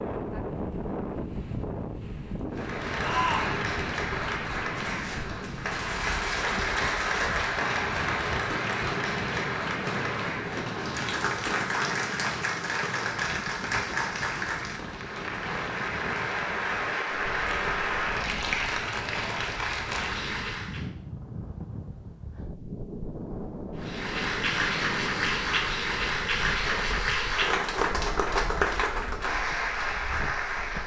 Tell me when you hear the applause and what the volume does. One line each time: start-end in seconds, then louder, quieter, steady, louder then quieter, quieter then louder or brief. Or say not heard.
2.5-20.9 steady
23.8-30.8 steady.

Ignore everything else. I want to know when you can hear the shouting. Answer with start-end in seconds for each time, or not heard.
3.0-3.6.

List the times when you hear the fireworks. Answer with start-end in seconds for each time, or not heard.
4.8-16.2.